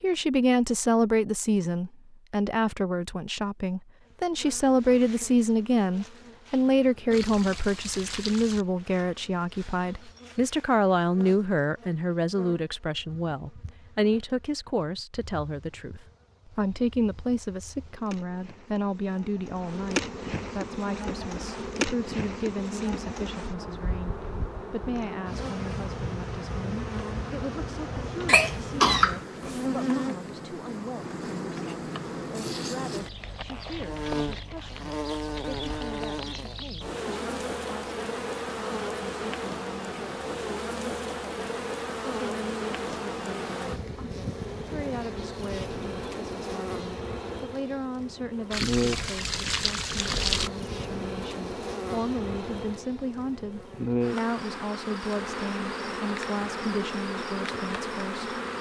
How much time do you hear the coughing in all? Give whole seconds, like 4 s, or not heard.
2 s.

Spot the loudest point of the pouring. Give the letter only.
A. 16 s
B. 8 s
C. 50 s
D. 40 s
C.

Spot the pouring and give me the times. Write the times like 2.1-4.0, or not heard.
7.1-8.7, 48.5-50.5.